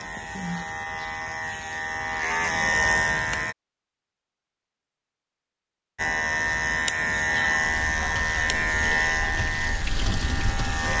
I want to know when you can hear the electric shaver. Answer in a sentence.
The electric shaver can be heard from 0.0 to 3.5 s and from 6.0 to 10.9 s.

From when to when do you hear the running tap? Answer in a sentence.
You can hear the running tap from 7.5 to 10.9 s.